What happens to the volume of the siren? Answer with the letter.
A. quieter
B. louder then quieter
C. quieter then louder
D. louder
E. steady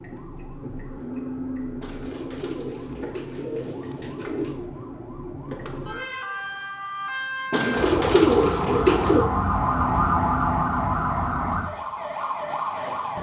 D.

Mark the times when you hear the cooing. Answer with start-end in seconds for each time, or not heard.
1.8-4.7, 7.5-9.3.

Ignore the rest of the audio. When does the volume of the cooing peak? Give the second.
8 s.